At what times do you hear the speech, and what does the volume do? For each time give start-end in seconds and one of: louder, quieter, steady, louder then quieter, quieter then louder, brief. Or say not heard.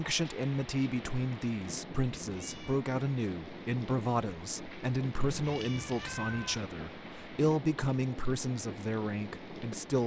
0.0-10.0 steady.